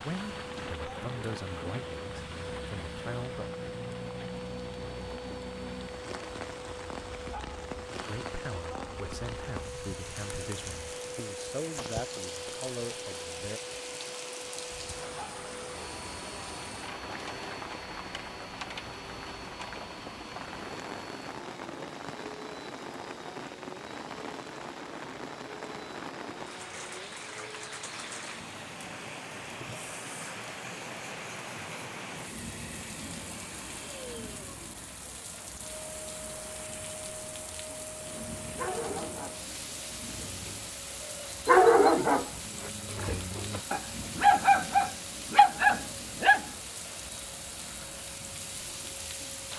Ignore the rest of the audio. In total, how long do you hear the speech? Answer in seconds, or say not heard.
9 s.